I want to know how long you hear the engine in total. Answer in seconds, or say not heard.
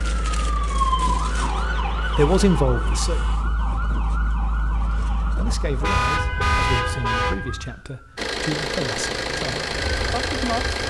5 s.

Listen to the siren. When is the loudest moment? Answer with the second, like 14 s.
1 s.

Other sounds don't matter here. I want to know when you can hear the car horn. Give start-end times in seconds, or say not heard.
1.5-3.4, 5.8-7.3.